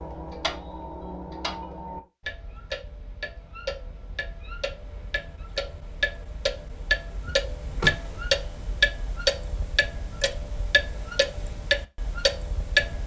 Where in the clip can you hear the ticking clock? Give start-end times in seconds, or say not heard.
0.0-13.0.